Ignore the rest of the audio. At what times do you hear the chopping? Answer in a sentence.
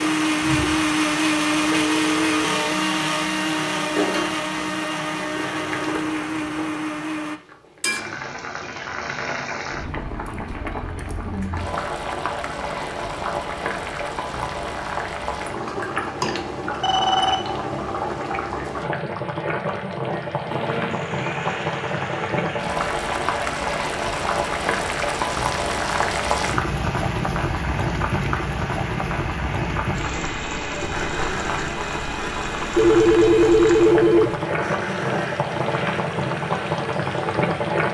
You can't hear the chopping here.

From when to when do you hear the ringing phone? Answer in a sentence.
You can hear the ringing phone from 1.7 to 2.7 s, from 16.8 to 17.6 s and from 32.8 to 34.4 s.